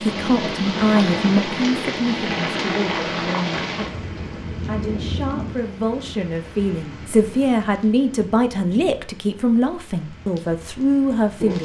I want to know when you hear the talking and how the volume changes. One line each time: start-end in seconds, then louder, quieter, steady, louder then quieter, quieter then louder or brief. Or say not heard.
0.0-11.5 quieter then louder.